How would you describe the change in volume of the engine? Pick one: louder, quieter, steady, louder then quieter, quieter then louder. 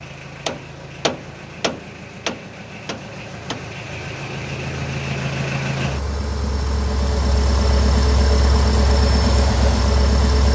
louder.